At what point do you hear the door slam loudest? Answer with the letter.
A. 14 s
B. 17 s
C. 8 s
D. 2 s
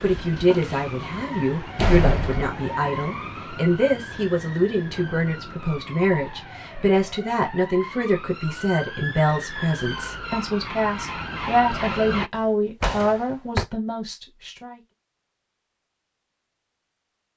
D.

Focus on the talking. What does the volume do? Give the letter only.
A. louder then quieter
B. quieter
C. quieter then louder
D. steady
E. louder
D.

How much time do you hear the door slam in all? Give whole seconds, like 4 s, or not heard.
2 s.